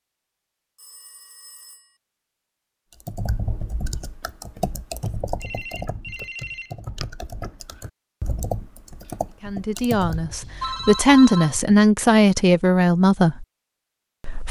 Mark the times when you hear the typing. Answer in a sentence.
You can hear the typing from 3.0 to 10.3 s.